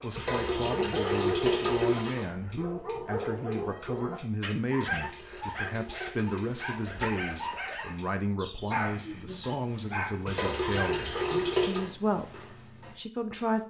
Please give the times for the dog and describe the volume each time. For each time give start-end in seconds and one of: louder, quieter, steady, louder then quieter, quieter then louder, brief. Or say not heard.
0.0-11.0 steady.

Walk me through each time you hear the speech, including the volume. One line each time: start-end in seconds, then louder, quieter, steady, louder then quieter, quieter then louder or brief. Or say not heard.
0.0-13.6 steady.